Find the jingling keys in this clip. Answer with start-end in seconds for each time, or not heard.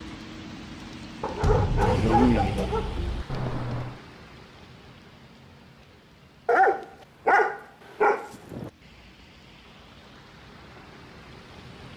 3.2-4.0.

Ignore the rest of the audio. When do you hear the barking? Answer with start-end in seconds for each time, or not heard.
1.2-3.2, 6.5-8.7.